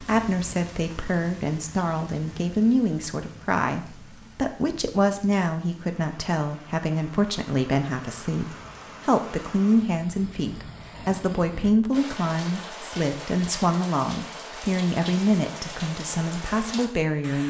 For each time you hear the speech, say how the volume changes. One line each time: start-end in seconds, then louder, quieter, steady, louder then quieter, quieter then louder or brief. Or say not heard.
0.0-17.4 steady.